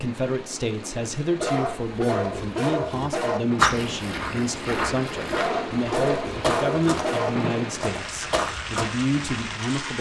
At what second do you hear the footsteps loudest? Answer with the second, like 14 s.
4 s.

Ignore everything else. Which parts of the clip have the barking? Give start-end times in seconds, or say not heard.
1.4-3.4, 5.3-7.3.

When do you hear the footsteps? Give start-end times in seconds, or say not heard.
3.5-8.8.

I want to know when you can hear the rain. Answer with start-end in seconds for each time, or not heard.
0.0-9.9.